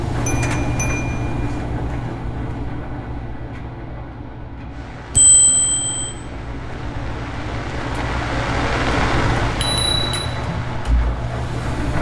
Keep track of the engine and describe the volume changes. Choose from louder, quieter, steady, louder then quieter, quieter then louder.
quieter then louder.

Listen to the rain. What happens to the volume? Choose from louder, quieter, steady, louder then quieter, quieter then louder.
louder then quieter.